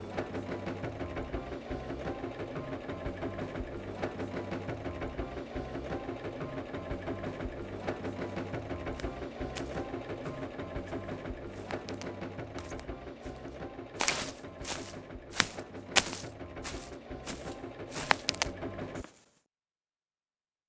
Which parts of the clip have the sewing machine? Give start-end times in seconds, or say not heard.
0.0-19.1.